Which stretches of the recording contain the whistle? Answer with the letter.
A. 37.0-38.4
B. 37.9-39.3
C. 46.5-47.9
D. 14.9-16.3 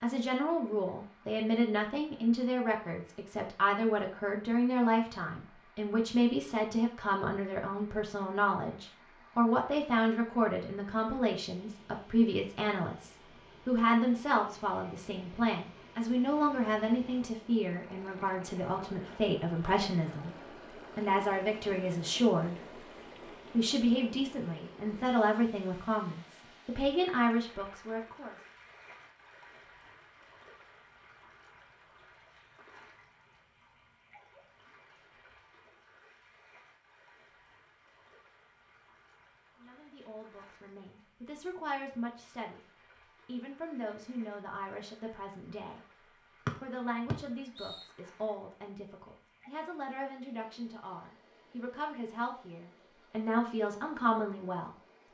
C.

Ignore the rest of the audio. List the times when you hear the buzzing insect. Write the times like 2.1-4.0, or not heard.
not heard.